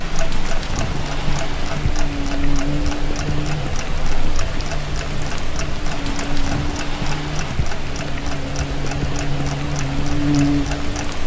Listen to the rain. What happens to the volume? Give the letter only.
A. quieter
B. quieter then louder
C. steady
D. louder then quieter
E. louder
C.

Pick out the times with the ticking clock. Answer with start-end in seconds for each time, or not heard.
0.0-11.2.